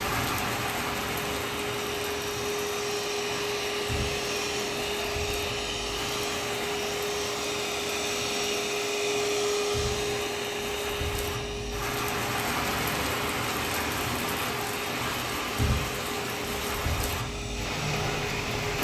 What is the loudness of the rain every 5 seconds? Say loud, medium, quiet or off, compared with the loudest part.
loud, medium, loud, loud.